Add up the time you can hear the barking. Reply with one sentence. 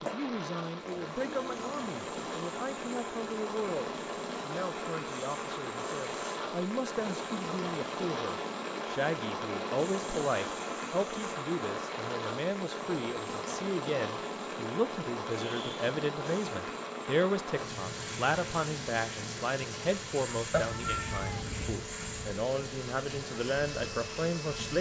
The barking can't be heard in this clip.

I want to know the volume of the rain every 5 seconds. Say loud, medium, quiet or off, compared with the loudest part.
loud, loud, loud, loud, medium.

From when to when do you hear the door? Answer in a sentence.
The door can't be heard in this clip.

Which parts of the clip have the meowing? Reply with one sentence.
The meowing can be heard from 20.5 to 21.9 s.